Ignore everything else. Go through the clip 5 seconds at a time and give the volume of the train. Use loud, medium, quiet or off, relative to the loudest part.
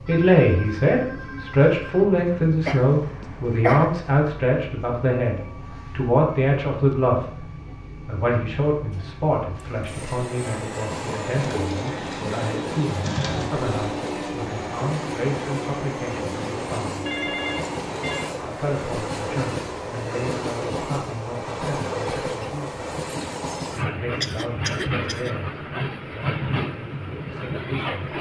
medium, medium, loud, loud, loud, loud.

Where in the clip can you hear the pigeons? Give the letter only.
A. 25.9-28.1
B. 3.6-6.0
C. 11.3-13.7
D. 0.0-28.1
C.